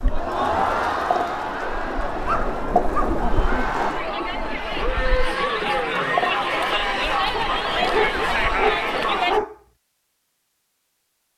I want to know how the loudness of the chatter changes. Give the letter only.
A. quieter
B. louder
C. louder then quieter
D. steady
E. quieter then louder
E.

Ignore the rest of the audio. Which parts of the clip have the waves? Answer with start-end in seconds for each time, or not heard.
0.0-9.4.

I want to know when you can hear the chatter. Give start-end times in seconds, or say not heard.
0.0-9.4.